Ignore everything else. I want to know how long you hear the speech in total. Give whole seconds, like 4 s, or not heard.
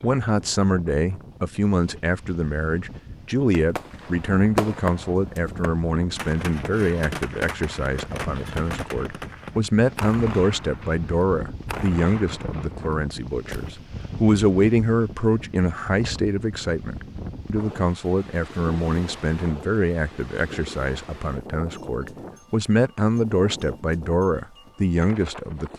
26 s.